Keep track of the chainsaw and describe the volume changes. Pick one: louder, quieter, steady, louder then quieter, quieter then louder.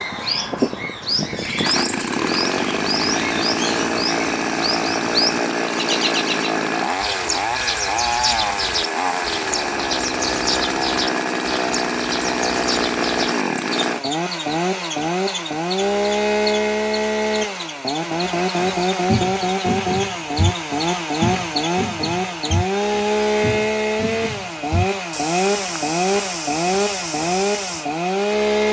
steady.